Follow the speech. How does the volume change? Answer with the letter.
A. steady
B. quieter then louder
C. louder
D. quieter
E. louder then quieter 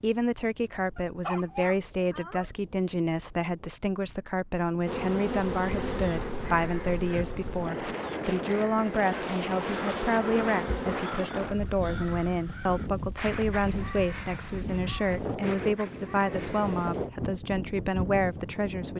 A.